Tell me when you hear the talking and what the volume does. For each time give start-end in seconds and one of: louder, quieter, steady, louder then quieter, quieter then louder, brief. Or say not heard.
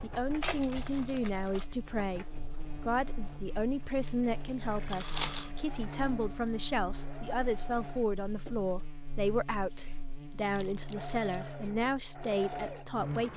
0.0-13.3 steady.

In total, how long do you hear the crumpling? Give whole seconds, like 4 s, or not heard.
3 s.